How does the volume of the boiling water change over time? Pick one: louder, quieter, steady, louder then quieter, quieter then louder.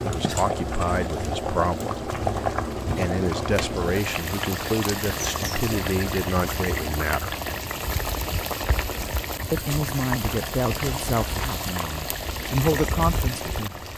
steady.